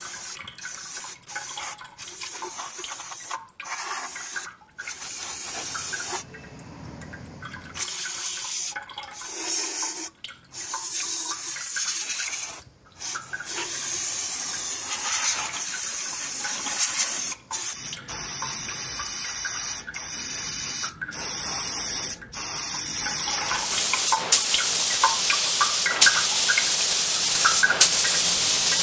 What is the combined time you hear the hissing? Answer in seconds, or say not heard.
29 s.